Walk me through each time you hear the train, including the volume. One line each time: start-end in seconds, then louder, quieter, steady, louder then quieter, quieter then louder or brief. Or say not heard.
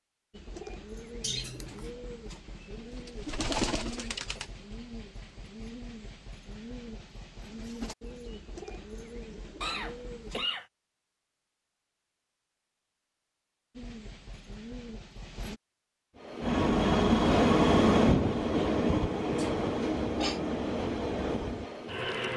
16.1-22.3 quieter.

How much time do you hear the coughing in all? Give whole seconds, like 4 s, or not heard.
3 s.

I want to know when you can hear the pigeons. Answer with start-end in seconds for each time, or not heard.
0.3-10.4, 13.8-15.6.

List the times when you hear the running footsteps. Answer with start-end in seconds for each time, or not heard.
not heard.